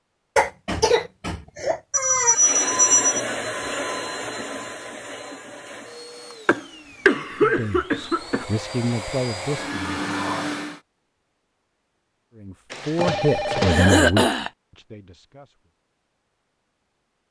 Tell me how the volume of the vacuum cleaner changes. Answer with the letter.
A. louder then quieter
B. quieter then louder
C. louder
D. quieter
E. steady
B.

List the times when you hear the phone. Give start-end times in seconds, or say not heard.
1.9-3.2, 12.7-14.1.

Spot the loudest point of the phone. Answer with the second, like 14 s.
3 s.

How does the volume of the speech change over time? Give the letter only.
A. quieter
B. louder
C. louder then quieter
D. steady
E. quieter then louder
C.